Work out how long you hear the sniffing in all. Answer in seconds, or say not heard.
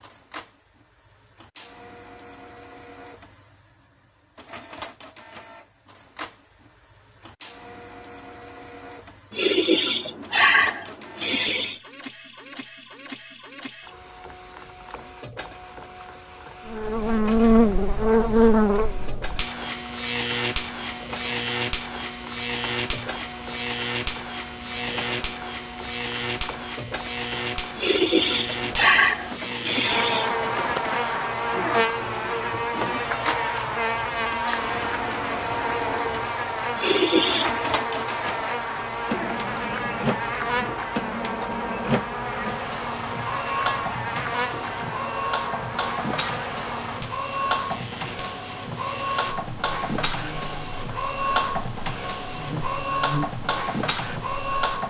6 s.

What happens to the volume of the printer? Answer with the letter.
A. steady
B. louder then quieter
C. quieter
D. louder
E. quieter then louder
D.